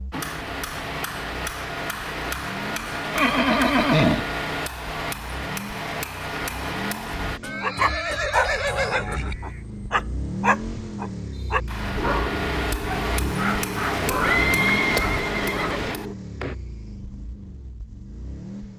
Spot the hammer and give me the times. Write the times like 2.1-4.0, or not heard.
0.1-7.4, 11.7-16.6.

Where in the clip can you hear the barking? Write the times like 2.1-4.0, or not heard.
7.6-16.1.